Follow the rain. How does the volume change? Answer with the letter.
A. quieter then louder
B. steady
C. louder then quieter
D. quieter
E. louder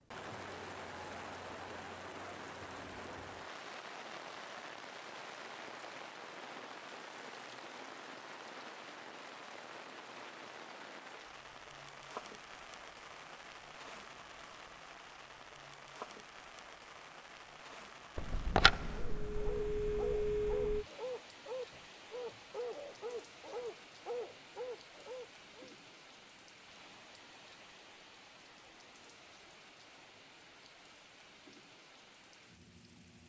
D.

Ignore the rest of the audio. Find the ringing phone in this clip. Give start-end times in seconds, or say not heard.
18.1-20.9.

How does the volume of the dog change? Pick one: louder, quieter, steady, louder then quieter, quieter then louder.
steady.